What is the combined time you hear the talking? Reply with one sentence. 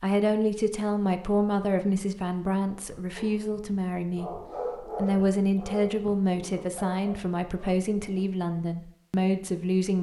You can hear the talking for 10 seconds altogether.